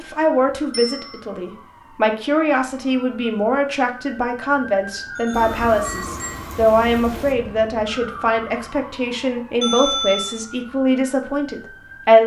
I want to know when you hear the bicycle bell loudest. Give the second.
10 s.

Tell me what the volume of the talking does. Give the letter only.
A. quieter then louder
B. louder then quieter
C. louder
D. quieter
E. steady
E.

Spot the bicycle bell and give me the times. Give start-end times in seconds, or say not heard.
0.7-1.1, 5.2-6.5, 9.6-10.3.